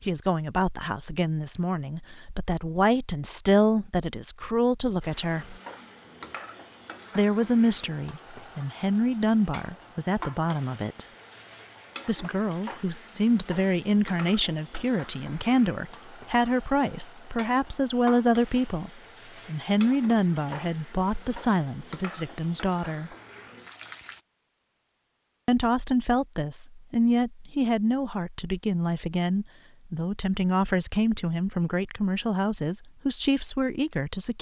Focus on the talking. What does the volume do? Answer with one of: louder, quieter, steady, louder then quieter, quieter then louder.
steady.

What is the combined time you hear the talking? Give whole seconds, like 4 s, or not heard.
29 s.